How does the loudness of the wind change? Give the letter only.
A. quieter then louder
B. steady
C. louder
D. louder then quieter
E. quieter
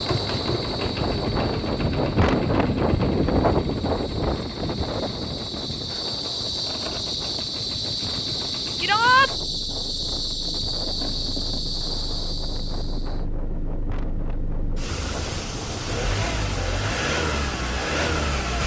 E.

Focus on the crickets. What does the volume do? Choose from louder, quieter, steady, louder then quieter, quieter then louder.
louder.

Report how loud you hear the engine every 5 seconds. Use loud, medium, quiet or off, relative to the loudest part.
medium, quiet, medium, loud.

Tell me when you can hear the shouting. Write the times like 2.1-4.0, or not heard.
8.8-9.3.